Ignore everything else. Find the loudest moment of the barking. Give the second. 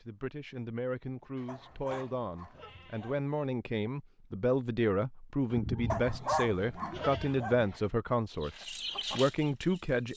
6 s.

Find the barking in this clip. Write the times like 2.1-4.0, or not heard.
1.4-3.2, 5.8-7.7.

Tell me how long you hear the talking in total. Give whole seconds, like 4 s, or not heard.
10 s.